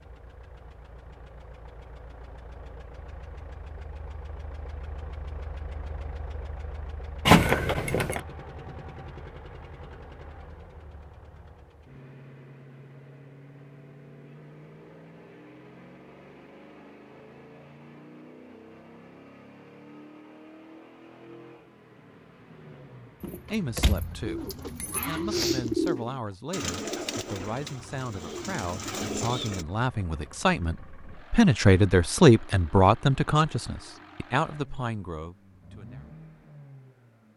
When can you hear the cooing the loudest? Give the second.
26 s.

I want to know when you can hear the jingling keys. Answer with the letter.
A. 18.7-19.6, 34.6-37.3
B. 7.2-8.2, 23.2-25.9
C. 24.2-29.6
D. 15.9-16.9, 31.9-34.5
B.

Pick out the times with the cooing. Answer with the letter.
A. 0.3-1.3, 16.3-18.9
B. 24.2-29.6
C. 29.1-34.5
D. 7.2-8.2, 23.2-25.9
B.